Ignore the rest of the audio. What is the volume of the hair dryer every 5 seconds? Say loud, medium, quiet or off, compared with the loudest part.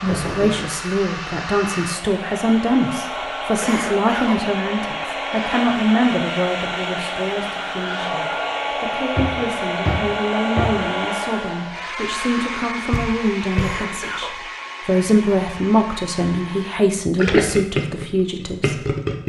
loud, loud, loud, medium.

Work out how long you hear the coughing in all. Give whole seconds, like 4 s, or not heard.
2 s.